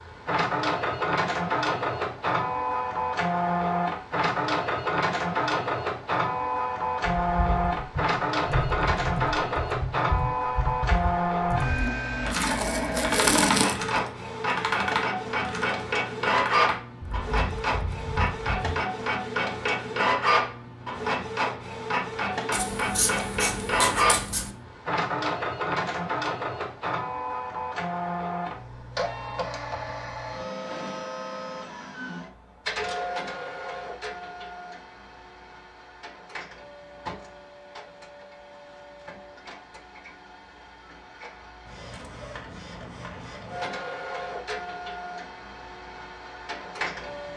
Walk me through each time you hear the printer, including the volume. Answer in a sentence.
You can hear the printer from 0.0 to 47.3 s, getting quieter.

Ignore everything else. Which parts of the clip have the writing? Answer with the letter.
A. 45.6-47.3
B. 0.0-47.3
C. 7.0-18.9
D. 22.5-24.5
D.